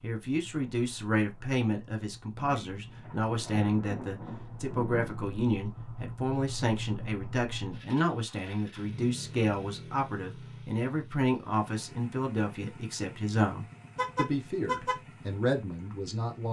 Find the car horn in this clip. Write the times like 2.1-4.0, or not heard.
13.9-15.0.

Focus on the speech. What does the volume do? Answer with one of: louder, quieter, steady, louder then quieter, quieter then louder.
steady.